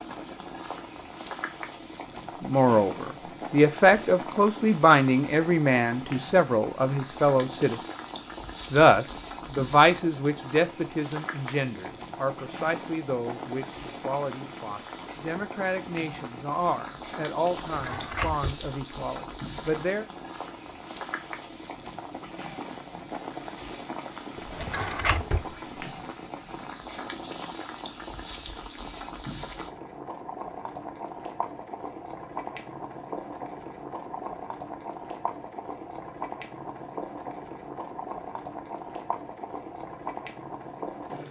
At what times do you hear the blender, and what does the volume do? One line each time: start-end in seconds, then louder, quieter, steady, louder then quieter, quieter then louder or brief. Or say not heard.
not heard.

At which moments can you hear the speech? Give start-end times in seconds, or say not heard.
2.4-7.8, 8.7-20.1.